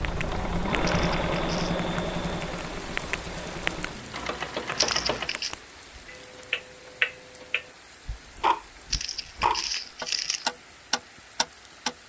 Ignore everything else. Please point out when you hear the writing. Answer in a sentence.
You can't hear the writing here.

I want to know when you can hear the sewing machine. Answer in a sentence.
The sewing machine can be heard from 0.0 to 5.4 s.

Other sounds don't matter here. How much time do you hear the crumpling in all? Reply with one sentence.
The crumpling can be heard for 3 seconds in total.